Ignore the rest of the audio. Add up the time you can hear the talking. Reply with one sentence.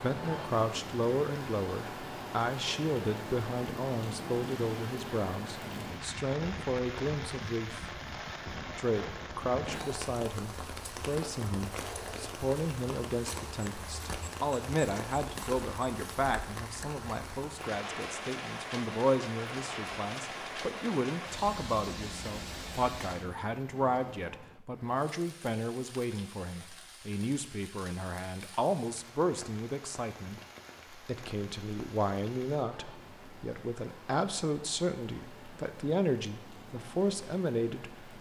You can hear the talking for 37 seconds altogether.